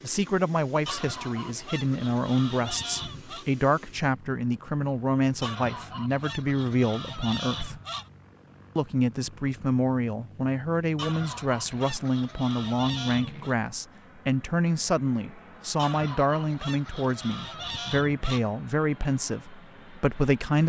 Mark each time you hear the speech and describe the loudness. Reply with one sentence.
The speech can be heard from 0.0 to 7.8 s, at a steady volume; and from 8.8 to 20.6 s, at a steady volume.